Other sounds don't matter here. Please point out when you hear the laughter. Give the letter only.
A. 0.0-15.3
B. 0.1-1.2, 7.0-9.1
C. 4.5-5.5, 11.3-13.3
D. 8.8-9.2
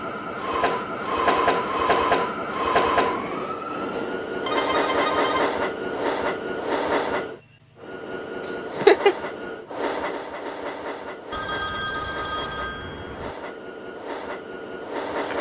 D.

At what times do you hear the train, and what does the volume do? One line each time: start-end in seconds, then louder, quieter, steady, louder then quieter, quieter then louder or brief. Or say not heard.
0.0-15.3 quieter.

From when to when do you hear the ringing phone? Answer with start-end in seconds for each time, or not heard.
4.5-5.5, 11.3-13.3.